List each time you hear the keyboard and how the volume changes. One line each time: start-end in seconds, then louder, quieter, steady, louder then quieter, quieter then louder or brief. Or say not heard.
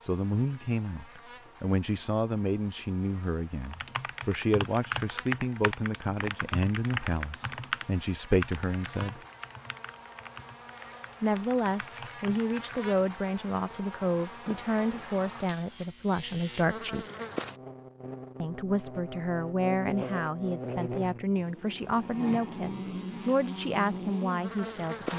3.6-12.9 quieter.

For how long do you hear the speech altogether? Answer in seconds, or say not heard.
22 s.